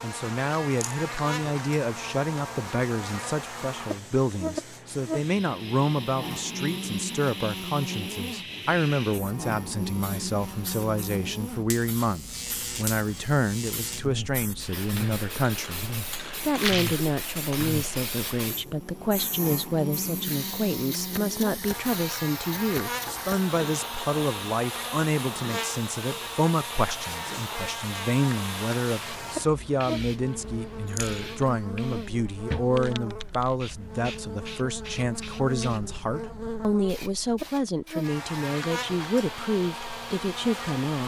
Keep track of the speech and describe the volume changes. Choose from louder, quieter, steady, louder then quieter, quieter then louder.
steady.